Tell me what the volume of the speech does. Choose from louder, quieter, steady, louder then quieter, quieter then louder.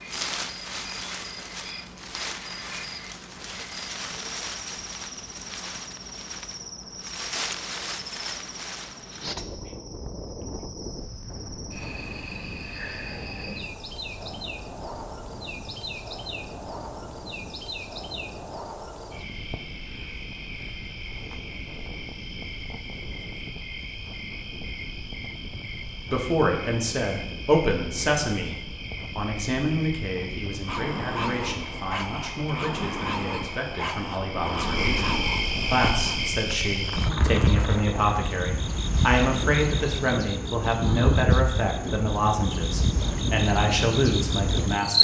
quieter then louder.